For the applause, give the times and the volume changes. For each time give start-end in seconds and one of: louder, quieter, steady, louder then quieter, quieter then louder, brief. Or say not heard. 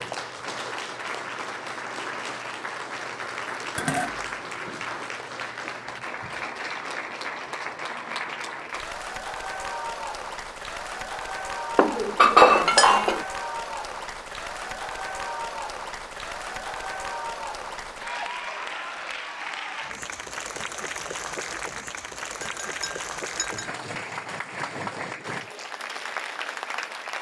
0.0-27.1 steady.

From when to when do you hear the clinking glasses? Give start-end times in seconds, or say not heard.
3.8-4.8, 11.8-13.2, 22.6-23.7.